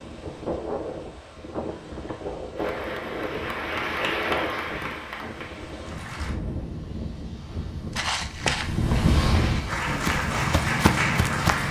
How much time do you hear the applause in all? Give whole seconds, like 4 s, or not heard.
6 s.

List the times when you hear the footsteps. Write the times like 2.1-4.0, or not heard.
8.0-11.6.